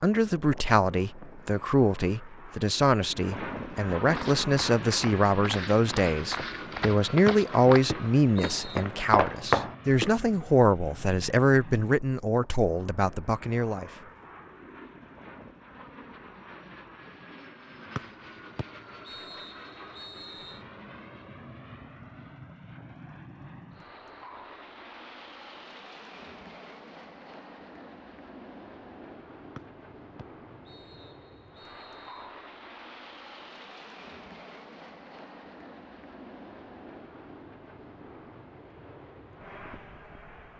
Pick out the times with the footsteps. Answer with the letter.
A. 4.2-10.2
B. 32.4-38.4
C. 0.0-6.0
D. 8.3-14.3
A.